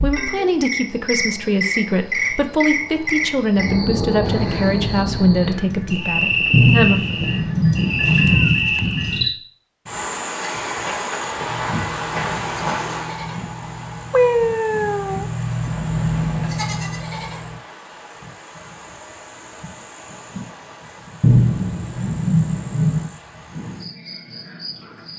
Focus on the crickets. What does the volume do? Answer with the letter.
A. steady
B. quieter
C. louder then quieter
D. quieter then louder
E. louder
B.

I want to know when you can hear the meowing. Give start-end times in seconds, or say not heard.
8.3-8.9, 14.1-15.7.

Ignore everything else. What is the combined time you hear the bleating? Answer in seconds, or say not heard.
11 s.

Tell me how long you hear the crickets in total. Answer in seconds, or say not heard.
25 s.